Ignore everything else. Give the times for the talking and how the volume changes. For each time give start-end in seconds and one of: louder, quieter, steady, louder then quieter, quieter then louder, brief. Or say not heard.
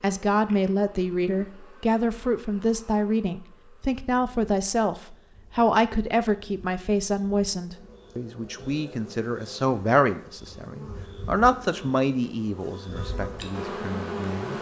0.0-14.5 steady.